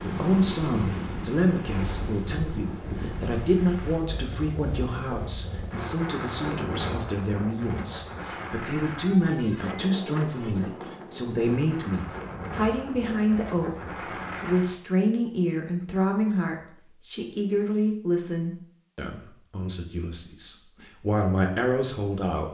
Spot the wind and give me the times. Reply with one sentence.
The wind can be heard from 0.0 to 14.8 s.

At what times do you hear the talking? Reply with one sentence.
You can hear the talking from 0.0 to 22.4 s.